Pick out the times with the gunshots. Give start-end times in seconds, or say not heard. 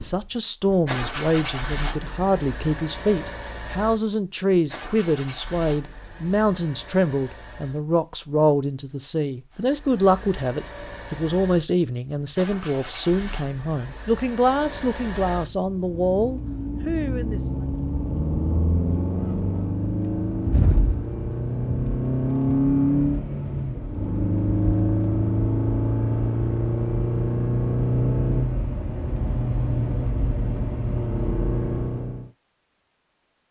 not heard.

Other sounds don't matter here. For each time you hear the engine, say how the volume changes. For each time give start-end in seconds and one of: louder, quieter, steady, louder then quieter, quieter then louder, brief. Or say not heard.
0.0-7.8 quieter
9.5-32.3 louder.